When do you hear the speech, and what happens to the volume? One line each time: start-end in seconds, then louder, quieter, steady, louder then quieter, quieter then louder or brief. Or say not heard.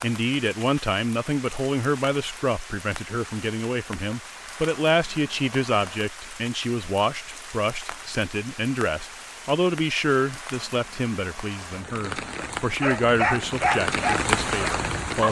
0.0-15.2 steady.